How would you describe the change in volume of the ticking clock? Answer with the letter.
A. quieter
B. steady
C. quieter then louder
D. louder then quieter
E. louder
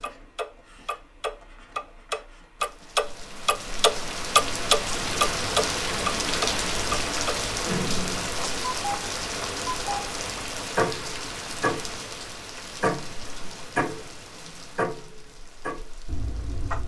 A.